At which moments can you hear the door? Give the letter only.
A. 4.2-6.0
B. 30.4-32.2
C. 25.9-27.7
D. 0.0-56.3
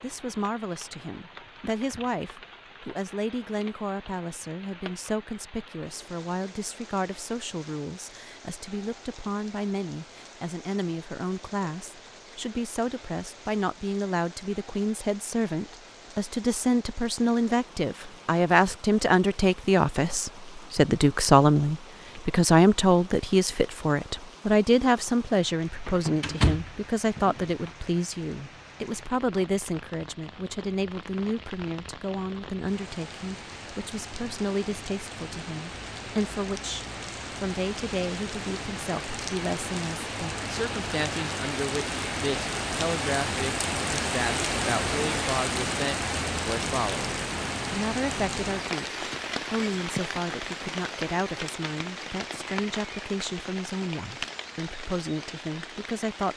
C.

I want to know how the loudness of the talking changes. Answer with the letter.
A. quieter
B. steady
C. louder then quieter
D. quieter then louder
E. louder
C.